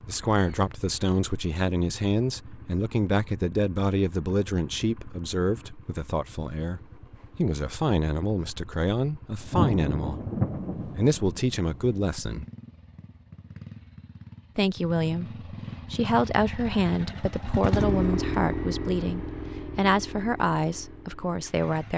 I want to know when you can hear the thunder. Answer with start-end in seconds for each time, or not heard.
9.4-11.9.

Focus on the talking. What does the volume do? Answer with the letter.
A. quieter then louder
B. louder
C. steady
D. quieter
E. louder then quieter
C.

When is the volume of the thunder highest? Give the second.
10 s.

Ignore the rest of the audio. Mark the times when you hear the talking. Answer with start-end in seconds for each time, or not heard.
0.1-12.4, 14.6-21.9.